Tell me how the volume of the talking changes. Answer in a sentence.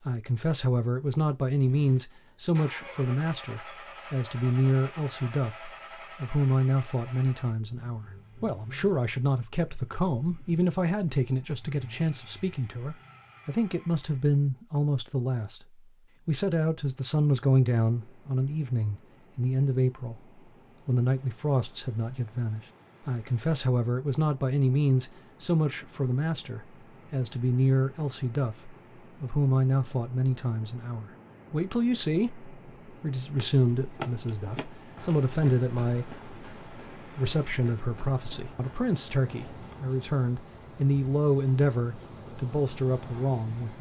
The volume of the talking stays about the same.